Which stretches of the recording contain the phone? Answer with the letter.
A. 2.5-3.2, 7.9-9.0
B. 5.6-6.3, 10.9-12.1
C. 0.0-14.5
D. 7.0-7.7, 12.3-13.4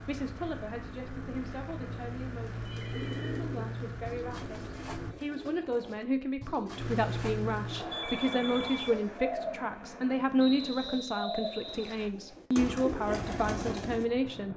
A.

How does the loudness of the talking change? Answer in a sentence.
The volume of the talking goes up.